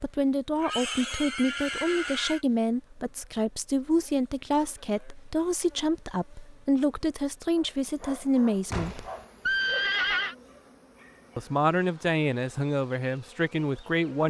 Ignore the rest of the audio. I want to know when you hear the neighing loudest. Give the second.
10 s.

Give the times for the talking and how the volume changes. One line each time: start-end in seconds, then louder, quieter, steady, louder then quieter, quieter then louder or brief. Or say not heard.
0.0-9.1 steady
11.3-14.2 brief.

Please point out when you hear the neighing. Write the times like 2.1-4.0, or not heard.
0.6-2.4, 8.7-10.3.